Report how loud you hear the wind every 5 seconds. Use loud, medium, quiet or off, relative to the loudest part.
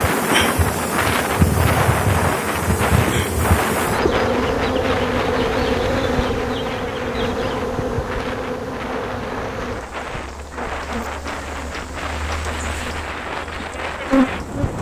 loud, medium, medium.